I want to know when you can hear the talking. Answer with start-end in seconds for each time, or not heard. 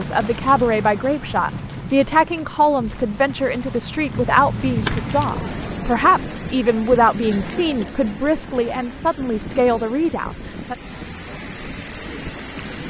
0.0-10.8.